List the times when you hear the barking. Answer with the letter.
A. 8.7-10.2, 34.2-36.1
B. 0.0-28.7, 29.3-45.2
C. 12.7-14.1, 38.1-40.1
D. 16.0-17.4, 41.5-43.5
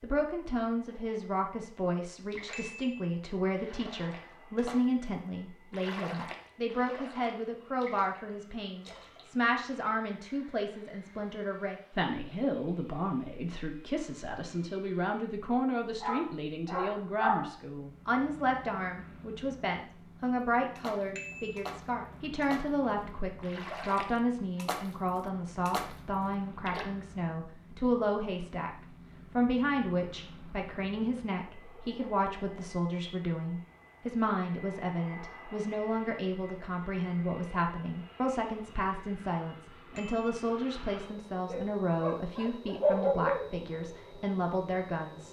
D.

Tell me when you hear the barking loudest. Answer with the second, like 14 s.
43 s.